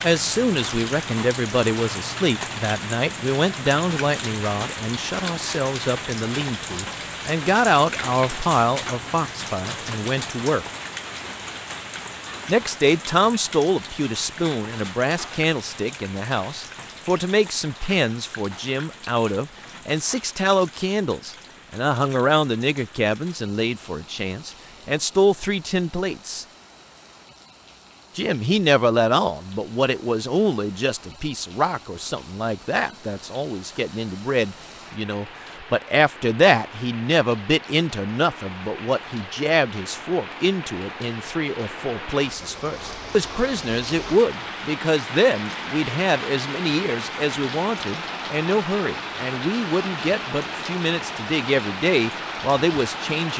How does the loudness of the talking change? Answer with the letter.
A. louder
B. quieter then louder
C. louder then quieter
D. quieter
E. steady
E.